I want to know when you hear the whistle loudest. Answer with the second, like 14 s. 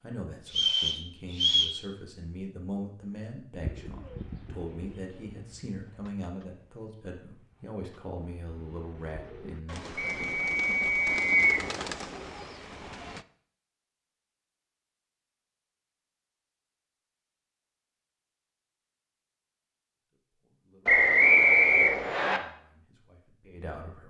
21 s.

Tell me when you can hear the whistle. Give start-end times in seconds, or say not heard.
0.6-1.8, 9.9-11.7, 20.9-22.4.